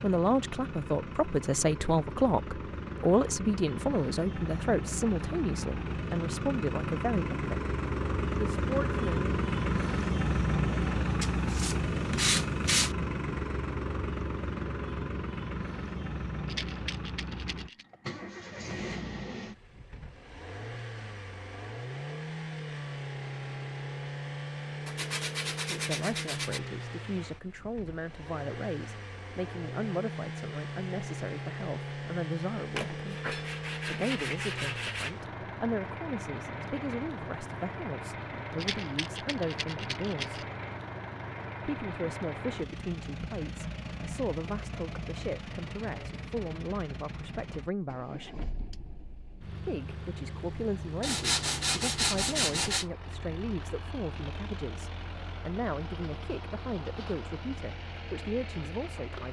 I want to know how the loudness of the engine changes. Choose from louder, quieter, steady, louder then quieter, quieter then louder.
quieter.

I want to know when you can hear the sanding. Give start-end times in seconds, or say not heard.
11.2-12.9, 24.9-26.6, 32.8-35.1, 51.0-52.9.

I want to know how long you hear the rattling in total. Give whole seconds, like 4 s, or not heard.
3 s.